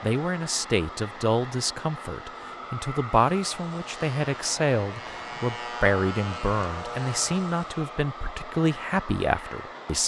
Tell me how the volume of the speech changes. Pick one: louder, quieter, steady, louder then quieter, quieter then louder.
steady.